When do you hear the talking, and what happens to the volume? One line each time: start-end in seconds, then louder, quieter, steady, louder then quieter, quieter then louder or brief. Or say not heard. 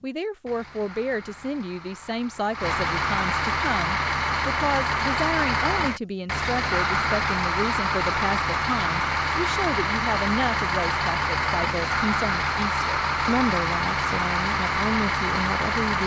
0.0-16.0 steady.